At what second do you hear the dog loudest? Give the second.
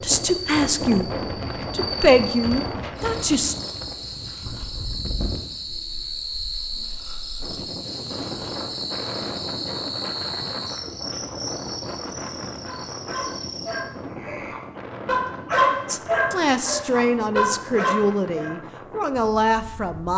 16 s.